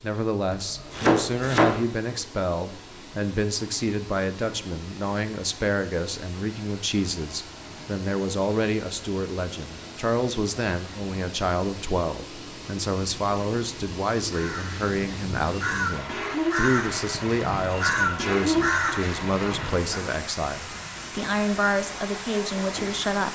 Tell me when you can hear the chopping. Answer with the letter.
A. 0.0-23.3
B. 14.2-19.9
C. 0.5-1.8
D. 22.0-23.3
C.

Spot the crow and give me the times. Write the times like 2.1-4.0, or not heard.
14.2-19.9.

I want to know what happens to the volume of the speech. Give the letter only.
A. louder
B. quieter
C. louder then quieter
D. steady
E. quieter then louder
D.